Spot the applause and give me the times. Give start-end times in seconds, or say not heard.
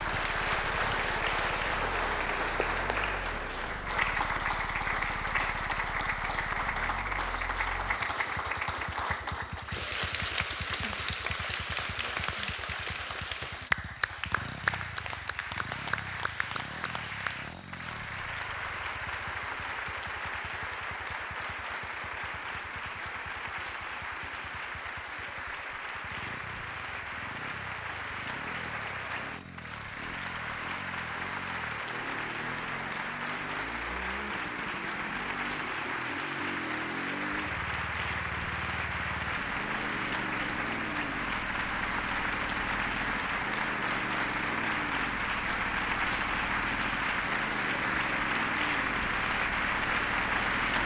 0.0-50.8.